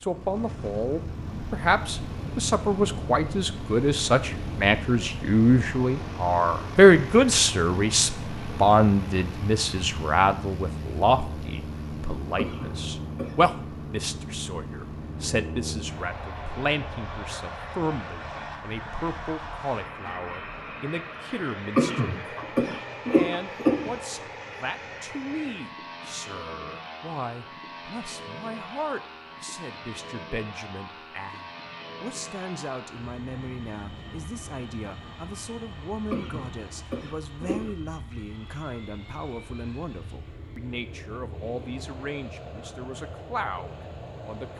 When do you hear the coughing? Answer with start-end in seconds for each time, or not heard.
12.3-13.3, 21.8-23.9, 36.1-37.7.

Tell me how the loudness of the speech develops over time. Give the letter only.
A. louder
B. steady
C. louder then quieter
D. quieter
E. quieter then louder
D.